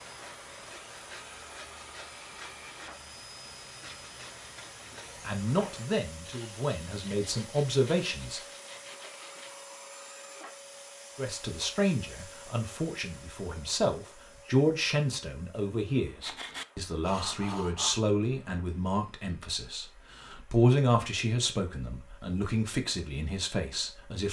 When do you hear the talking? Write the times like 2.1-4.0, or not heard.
5.2-8.4, 11.2-24.2.